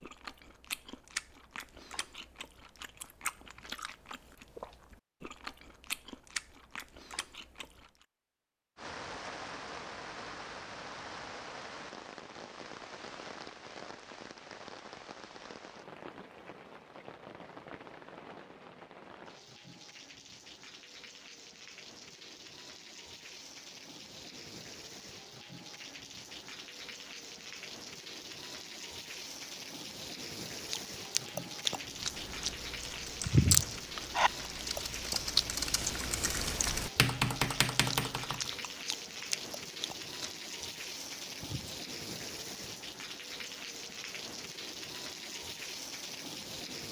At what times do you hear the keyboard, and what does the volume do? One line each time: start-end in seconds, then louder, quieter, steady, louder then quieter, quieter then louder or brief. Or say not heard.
32.0-38.5 louder.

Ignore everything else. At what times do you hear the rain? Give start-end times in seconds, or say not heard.
8.8-46.8.